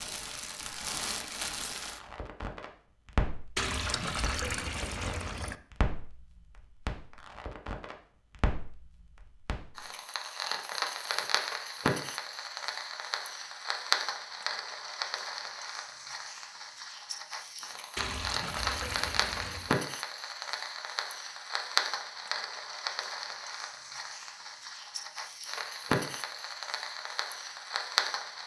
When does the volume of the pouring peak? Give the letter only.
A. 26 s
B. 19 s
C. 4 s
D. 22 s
C.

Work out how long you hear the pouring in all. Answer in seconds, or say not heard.
4 s.